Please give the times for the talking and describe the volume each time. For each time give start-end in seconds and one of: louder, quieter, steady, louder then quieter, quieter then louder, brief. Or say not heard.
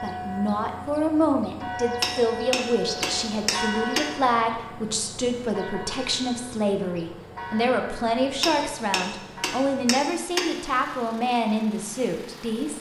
0.0-12.7 steady.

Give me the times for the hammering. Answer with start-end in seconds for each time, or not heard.
2.0-4.0, 8.4-10.4.